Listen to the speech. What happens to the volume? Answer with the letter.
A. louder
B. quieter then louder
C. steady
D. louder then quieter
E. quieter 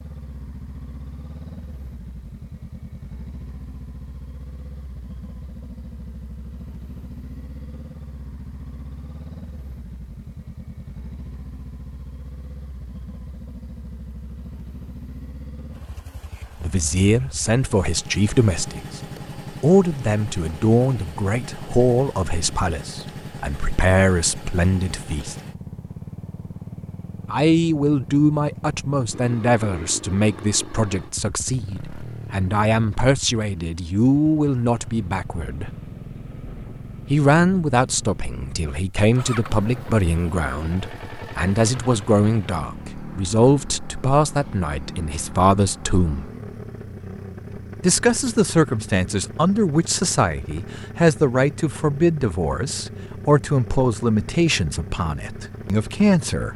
C.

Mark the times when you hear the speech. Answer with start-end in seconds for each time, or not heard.
16.6-25.4, 27.3-35.7, 37.1-46.2, 47.8-56.5.